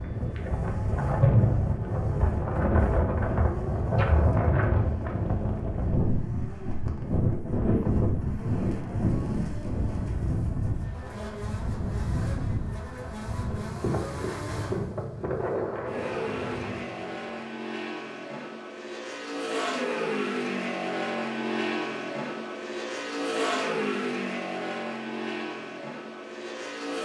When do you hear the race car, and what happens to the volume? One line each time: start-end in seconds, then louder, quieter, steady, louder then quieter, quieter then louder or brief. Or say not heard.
0.0-27.0 louder.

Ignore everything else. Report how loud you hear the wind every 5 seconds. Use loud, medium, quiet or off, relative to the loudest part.
loud, loud, medium, medium, off, off.